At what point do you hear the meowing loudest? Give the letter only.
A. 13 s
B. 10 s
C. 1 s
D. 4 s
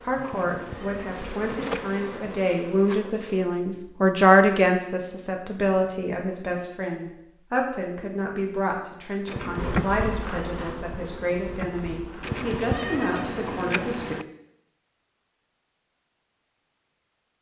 A.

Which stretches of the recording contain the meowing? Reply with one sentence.
The meowing can be heard from 0.2 to 2.0 s, from 9.2 to 9.9 s and from 12.2 to 14.2 s.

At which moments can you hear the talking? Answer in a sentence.
The talking can be heard from 0.0 to 14.2 s.